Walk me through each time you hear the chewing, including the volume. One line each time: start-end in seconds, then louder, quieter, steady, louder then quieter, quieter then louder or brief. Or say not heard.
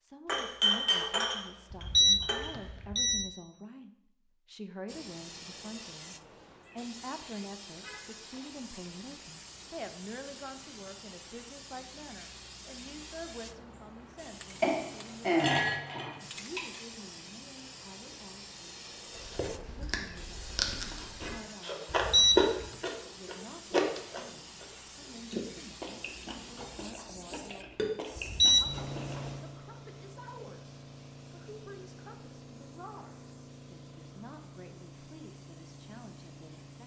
19.1-29.3 louder then quieter.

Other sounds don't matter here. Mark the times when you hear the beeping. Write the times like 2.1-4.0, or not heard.
1.7-3.2, 21.9-22.6, 28.1-28.7.